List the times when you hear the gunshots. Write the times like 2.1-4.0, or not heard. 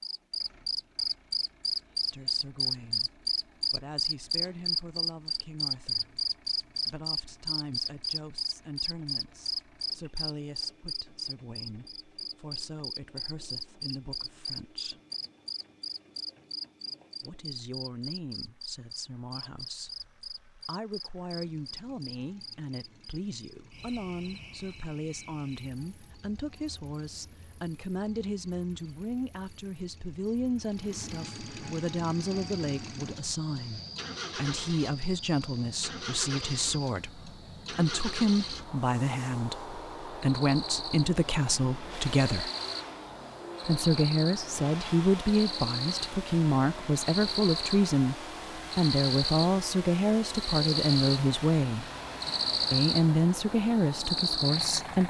not heard.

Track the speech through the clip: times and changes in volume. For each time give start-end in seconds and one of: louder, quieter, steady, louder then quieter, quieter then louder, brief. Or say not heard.
2.0-15.0 steady
17.2-42.5 louder
43.6-51.9 steady
52.7-55.0 brief.